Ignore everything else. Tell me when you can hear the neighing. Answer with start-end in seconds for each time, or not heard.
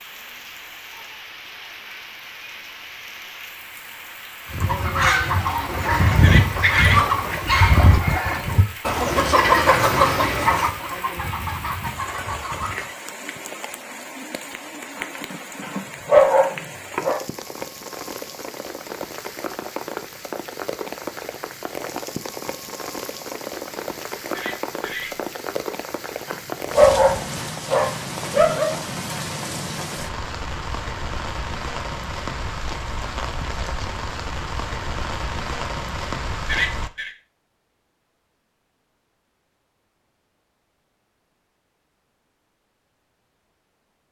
6.2-7.0, 24.3-25.1, 36.5-37.1.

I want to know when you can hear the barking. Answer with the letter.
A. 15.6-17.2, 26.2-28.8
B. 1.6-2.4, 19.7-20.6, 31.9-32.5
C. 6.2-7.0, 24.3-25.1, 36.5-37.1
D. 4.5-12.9
A.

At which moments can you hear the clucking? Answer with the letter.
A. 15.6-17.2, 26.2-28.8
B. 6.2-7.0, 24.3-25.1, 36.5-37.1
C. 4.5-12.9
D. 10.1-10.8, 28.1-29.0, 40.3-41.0
C.